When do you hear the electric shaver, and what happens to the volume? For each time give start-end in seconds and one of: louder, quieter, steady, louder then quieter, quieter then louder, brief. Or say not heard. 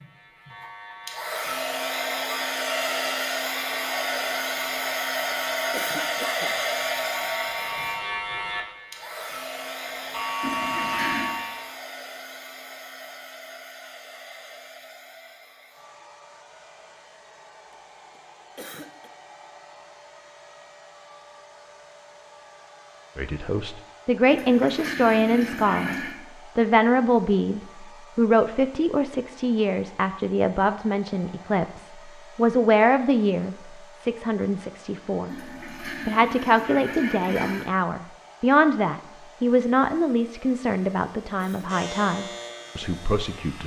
0.0-11.7 louder
41.6-43.6 brief.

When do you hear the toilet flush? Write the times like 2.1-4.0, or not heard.
10.4-11.3, 24.2-26.1, 35.2-37.7.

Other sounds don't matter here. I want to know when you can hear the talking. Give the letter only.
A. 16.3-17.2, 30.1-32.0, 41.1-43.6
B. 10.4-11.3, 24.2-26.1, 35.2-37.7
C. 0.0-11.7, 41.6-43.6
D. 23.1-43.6
D.